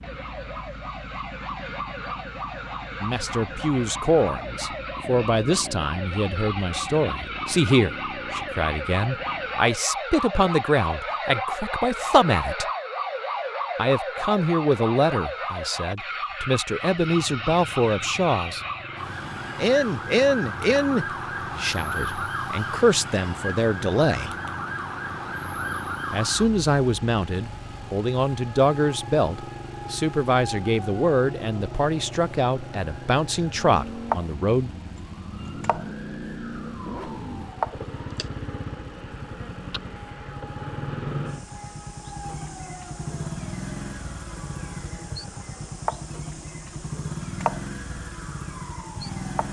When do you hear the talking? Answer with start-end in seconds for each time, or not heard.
3.0-12.7, 13.8-18.6, 19.6-24.3, 26.1-34.7.